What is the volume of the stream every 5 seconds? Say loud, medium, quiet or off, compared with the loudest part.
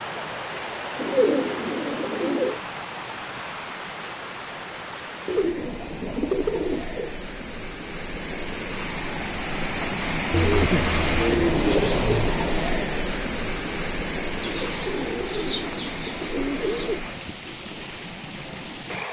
medium, medium, loud, medium.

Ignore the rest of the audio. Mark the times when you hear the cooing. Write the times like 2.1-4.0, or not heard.
0.9-2.6, 5.2-7.2, 10.3-12.3, 14.4-17.1.